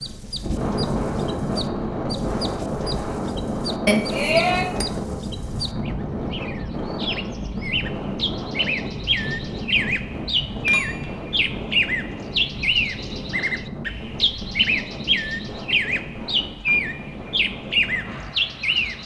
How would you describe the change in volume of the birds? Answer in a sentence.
The volume of the birds goes up.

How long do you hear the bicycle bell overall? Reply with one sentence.
The bicycle bell can be heard for 2 seconds in total.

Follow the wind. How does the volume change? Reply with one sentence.
The volume of the wind goes down.